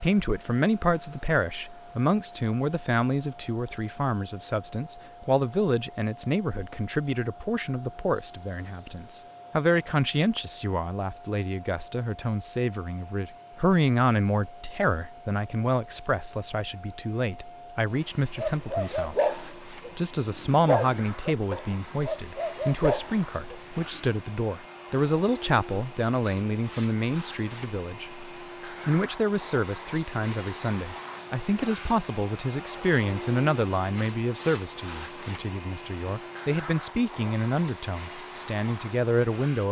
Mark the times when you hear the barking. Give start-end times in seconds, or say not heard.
18.4-24.1.